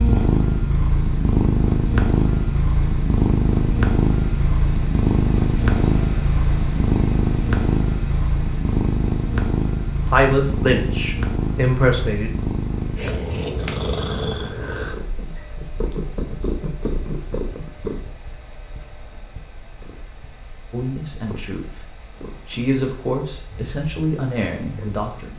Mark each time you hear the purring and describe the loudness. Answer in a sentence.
The purring can be heard from 0.0 to 25.1 s, getting quieter.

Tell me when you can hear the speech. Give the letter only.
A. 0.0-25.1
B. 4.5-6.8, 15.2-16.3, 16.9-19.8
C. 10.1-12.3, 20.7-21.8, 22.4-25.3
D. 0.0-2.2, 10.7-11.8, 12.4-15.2
C.